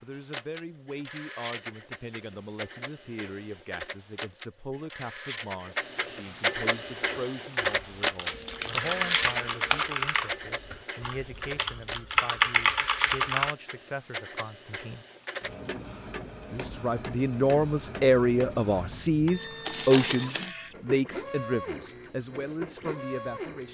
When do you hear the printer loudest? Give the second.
8 s.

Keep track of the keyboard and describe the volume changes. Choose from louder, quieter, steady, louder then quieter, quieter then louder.
quieter then louder.